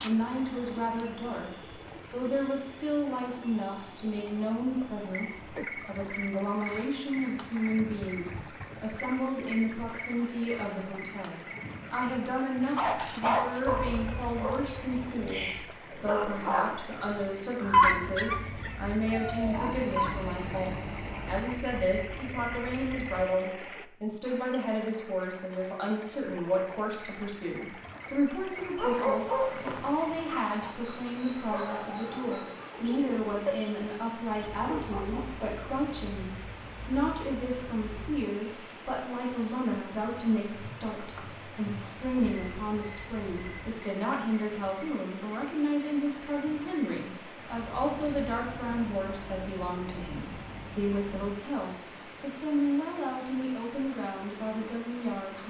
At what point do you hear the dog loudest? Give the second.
18 s.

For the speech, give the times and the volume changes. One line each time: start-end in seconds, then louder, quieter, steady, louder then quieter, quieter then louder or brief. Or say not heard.
0.0-1.5 brief
2.1-55.4 steady.